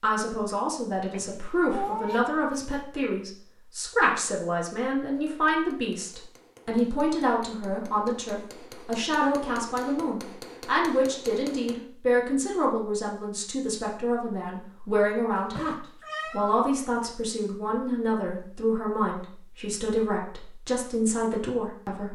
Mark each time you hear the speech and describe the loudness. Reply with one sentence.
You can hear the speech from 0.0 to 22.1 s, at a steady volume.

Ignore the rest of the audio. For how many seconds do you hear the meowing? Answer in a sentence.
The meowing can be heard for 3 seconds in total.